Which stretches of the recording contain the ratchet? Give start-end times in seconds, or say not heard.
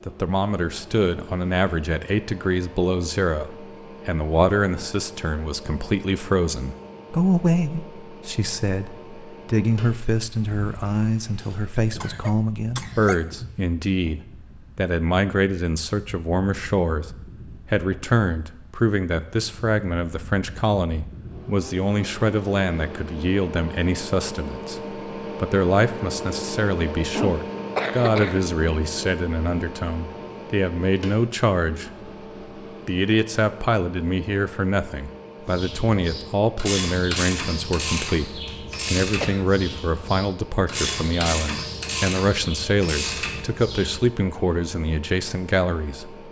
35.5-44.0.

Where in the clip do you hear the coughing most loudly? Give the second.
28 s.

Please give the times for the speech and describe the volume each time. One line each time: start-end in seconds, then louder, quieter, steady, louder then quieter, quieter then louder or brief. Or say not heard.
0.1-32.1 steady
32.9-46.2 steady.